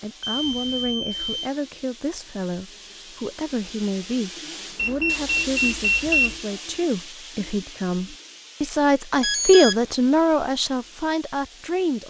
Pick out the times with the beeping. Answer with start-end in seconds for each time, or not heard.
0.2-1.5, 4.8-6.3, 9.2-9.8.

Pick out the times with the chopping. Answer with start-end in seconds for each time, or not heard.
not heard.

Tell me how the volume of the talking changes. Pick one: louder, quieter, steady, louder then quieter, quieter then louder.
louder.